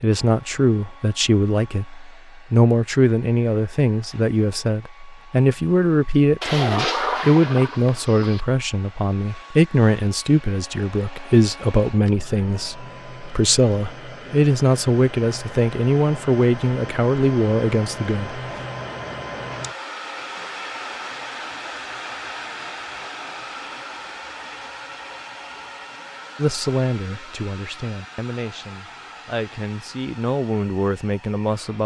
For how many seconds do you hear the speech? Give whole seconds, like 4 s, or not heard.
24 s.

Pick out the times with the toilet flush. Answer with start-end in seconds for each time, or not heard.
6.4-8.4.